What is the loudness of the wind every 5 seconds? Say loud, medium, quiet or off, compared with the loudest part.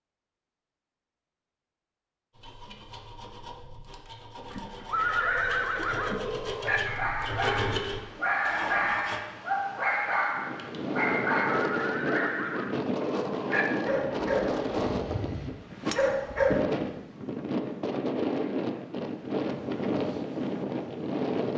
off, off, loud, loud, loud.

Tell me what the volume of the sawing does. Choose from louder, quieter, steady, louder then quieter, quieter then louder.
louder.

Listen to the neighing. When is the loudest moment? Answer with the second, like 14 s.
5 s.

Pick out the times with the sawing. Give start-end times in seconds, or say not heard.
2.3-9.2.